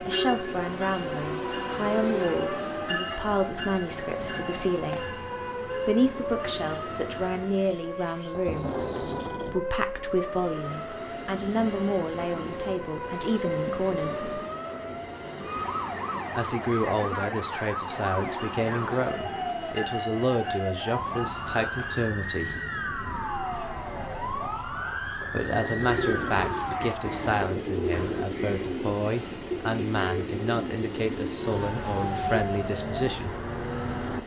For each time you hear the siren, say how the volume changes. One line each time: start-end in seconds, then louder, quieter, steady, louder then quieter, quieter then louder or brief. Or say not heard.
0.0-28.3 steady
31.4-34.2 brief.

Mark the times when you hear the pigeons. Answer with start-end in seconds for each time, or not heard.
25.9-32.5.